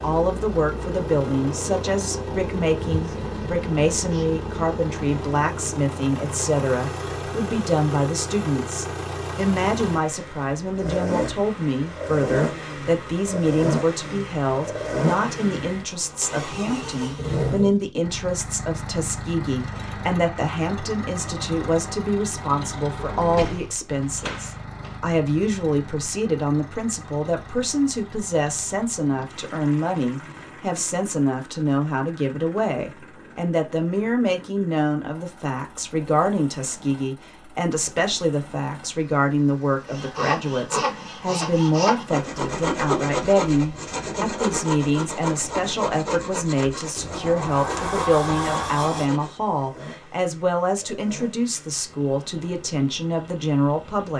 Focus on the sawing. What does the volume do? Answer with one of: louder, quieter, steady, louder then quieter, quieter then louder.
quieter.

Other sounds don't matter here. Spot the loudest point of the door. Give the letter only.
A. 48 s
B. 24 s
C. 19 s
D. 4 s
A.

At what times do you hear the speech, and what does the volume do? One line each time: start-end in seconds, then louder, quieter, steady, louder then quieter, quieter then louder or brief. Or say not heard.
0.0-54.1 steady.